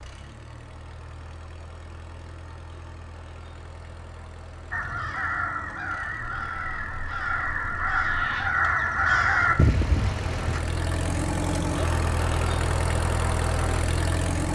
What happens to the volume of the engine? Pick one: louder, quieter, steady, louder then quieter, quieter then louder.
louder.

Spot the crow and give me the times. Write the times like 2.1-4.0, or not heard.
4.7-10.6.